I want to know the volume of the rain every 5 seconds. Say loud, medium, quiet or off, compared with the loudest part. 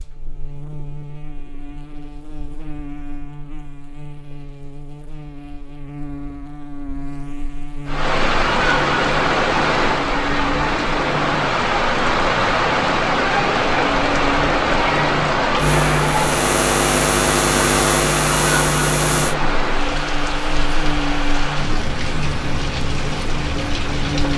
off, loud, loud, loud, medium.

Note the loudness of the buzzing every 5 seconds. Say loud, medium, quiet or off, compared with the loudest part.
quiet, quiet, medium, loud, medium.